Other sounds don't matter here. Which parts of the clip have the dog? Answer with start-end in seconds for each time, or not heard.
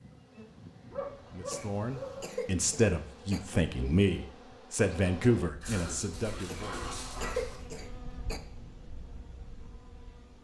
0.9-2.2, 5.6-7.6.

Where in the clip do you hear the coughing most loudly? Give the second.
7 s.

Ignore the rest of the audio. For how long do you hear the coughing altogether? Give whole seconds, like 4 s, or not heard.
4 s.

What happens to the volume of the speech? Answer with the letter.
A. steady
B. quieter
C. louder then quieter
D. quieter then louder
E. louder
C.